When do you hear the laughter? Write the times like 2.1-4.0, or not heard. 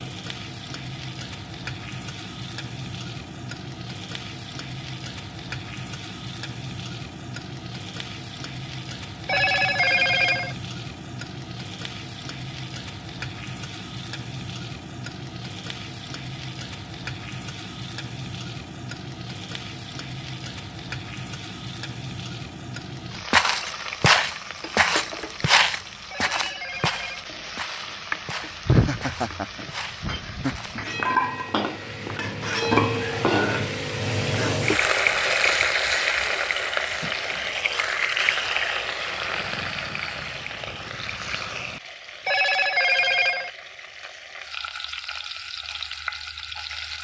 28.6-30.8.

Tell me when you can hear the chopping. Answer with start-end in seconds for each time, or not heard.
not heard.